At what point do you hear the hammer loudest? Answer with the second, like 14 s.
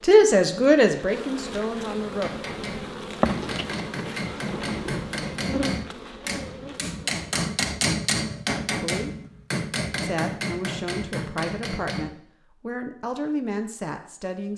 8 s.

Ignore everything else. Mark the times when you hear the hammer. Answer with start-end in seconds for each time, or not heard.
1.9-12.1.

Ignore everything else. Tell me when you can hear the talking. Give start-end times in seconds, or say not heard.
0.0-2.3, 8.8-9.2, 10.0-14.5.